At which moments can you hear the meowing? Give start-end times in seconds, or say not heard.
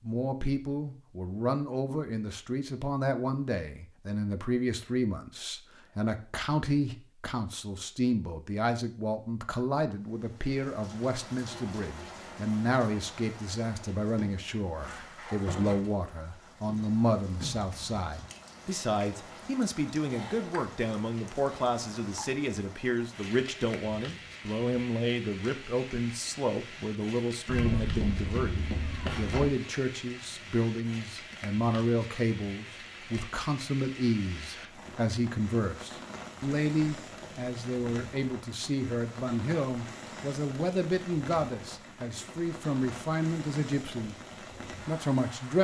27.4-29.5.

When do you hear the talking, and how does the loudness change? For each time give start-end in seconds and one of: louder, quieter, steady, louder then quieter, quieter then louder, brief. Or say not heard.
0.0-45.5 steady.